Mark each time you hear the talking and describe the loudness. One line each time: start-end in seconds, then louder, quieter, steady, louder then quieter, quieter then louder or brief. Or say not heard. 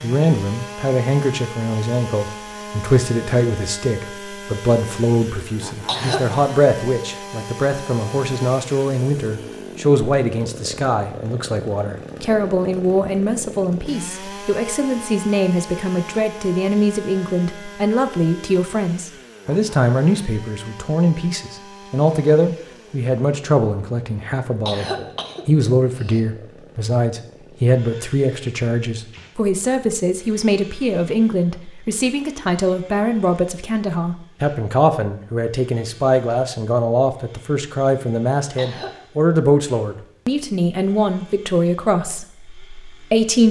0.0-43.4 steady.